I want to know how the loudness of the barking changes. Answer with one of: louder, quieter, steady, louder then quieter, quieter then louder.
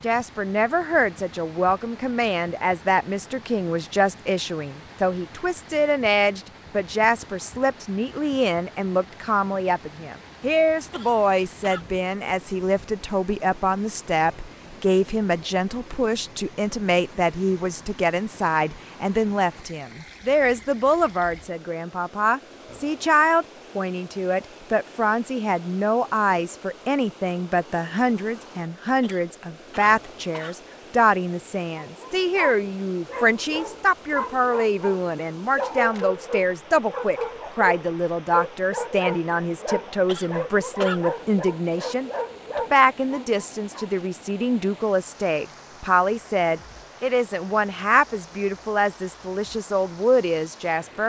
steady.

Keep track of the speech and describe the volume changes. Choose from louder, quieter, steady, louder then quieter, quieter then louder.
steady.